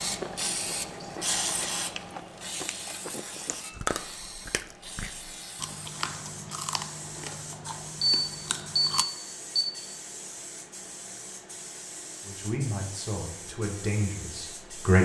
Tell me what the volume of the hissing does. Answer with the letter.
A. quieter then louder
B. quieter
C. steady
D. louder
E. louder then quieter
B.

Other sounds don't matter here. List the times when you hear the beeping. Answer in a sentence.
The beeping can be heard from 8.0 to 9.7 s.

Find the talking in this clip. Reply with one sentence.
The talking can be heard from 12.2 to 15.0 s.